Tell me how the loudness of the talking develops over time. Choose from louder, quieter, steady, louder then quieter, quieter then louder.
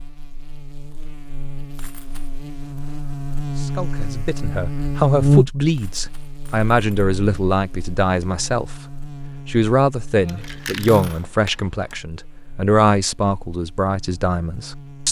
steady.